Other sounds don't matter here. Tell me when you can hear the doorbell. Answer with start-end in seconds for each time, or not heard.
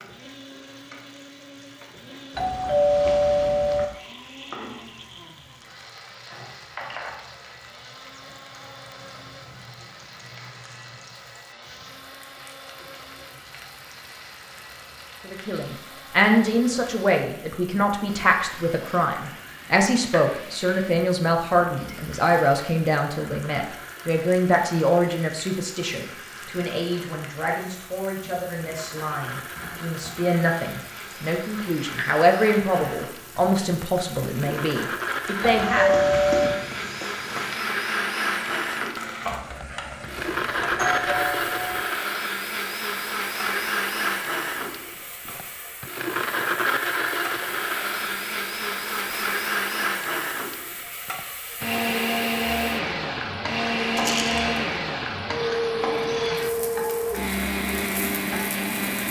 2.4-3.9, 35.4-36.6, 40.8-41.9.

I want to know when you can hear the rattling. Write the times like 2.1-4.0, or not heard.
54.0-54.5.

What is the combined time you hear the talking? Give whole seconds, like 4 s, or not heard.
21 s.